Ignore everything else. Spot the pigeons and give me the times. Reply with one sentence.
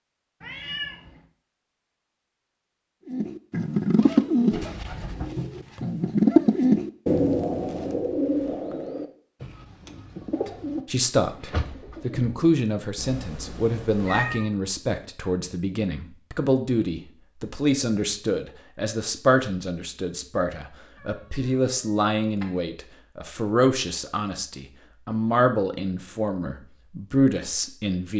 You can hear the pigeons from 3.0 to 12.6 s.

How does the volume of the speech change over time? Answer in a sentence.
The loudness of the speech stays about the same.